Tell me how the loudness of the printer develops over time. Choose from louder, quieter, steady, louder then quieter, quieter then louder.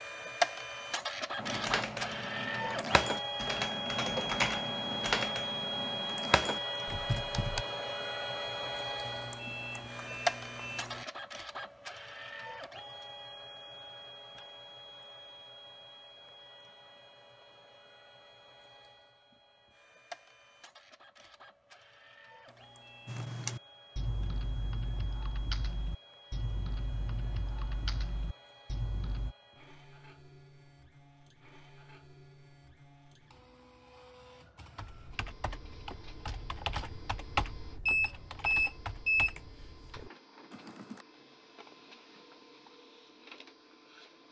quieter.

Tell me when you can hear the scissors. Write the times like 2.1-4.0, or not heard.
not heard.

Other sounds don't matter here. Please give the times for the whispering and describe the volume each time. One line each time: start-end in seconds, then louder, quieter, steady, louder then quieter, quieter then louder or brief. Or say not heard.
not heard.